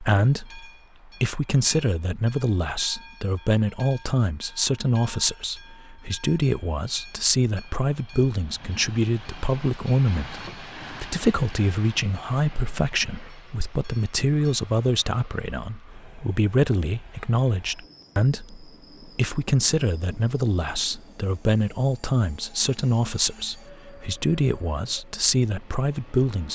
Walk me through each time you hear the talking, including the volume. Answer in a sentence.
The talking can be heard from 0.0 to 26.5 s, at a steady volume.